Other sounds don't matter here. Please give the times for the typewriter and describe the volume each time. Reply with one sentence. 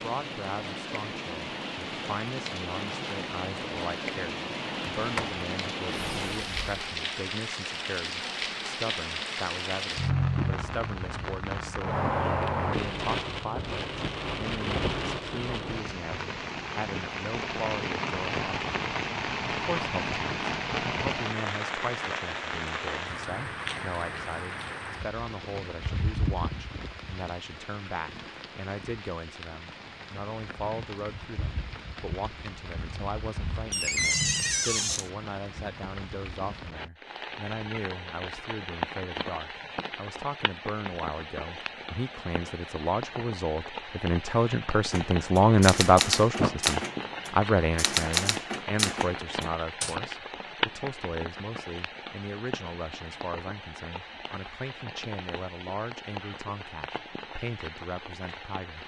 The typewriter can be heard from 44.9 to 50.0 s, getting quieter then louder.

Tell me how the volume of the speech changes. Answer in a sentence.
The volume of the speech goes up, then down.